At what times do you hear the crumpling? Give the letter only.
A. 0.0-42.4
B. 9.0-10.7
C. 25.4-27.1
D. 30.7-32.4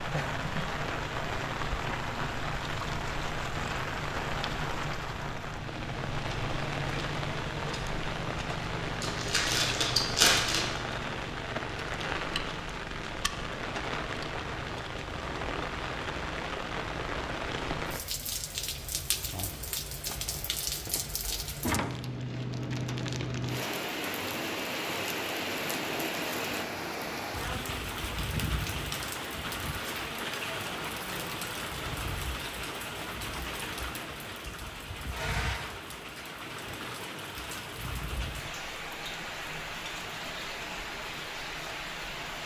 B.